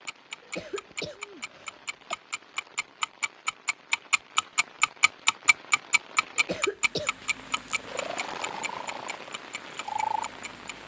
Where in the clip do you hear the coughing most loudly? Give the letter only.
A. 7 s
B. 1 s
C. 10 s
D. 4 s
A.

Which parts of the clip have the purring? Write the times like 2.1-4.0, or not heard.
6.8-10.8.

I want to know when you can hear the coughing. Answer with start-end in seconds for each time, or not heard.
0.4-2.1, 6.3-7.1.